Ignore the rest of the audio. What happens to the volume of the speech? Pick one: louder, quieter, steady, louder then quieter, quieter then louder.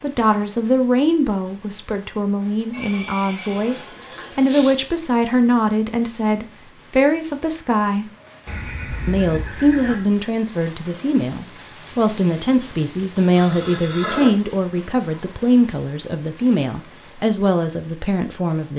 steady.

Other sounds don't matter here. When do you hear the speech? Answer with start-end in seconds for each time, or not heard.
0.0-8.1, 9.1-18.7.